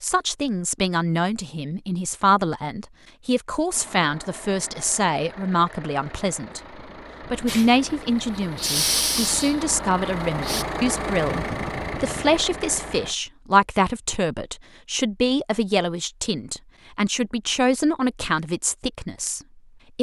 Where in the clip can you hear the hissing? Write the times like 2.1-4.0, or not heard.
7.5-10.7.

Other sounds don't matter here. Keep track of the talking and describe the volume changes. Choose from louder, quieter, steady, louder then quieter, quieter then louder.
steady.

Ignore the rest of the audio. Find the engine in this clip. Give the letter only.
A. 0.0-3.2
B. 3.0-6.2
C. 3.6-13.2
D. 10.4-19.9
C.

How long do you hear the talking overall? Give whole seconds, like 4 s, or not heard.
19 s.